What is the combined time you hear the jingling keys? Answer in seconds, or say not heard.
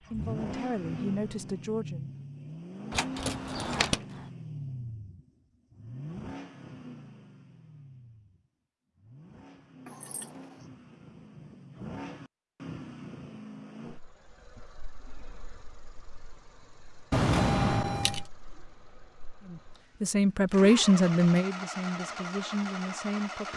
3 s.